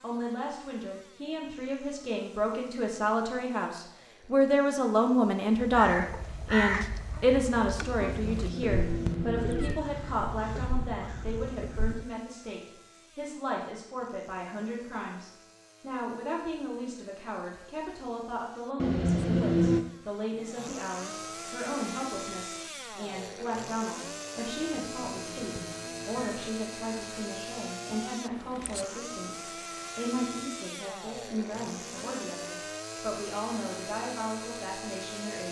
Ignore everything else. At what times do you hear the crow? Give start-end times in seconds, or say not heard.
5.5-12.1.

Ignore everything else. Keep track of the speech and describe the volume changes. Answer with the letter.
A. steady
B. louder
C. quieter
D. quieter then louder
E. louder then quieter
C.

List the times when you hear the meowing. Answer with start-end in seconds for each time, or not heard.
8.0-9.8, 18.8-19.9, 24.4-26.5.